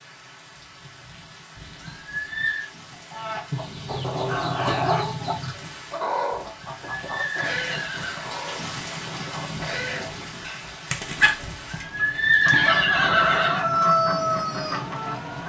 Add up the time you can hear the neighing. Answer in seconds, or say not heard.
5 s.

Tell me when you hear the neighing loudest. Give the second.
12 s.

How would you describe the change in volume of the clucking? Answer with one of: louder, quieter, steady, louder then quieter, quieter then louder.
quieter then louder.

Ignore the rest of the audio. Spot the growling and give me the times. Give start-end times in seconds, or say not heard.
4.0-5.0.